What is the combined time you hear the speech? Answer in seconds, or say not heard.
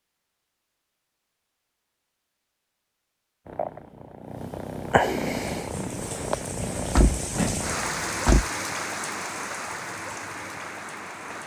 not heard.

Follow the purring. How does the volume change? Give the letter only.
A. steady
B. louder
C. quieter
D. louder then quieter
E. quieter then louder
D.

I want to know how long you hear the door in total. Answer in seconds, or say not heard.
2 s.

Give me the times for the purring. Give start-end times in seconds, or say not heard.
3.5-8.3.